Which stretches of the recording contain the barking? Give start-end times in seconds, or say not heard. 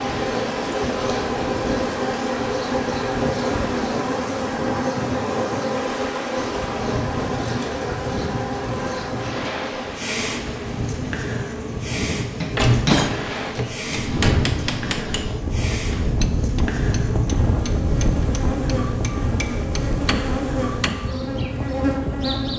not heard.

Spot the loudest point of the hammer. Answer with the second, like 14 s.
13 s.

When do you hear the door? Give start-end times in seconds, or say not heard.
12.6-14.4.